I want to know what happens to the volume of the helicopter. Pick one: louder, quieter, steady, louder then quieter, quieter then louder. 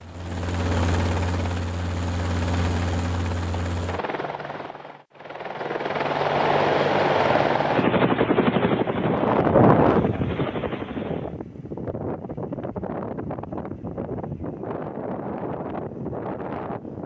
louder then quieter.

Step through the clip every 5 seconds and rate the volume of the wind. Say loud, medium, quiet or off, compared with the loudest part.
off, loud, medium, medium.